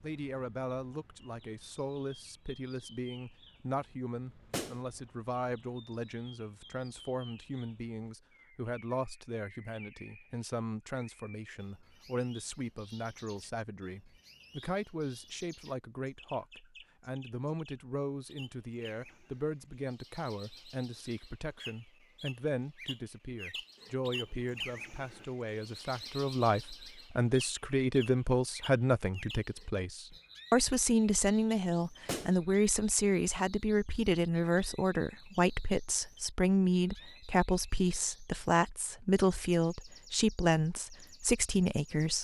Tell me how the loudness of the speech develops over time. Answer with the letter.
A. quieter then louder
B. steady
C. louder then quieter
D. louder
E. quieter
D.